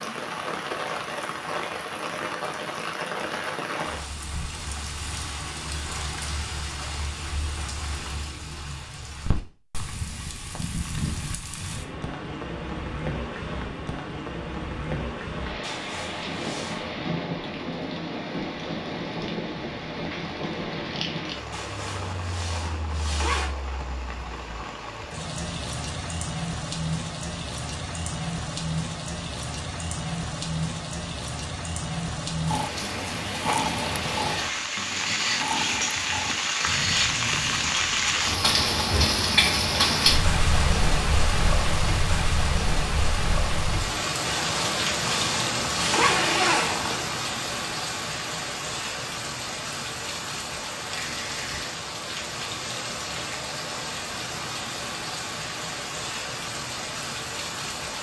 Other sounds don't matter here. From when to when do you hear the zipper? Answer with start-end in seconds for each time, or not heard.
15.6-16.9, 21.5-23.5, 44.2-47.0.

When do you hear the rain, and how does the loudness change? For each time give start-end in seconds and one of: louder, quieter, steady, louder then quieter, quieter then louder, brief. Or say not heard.
0.0-57.9 louder then quieter.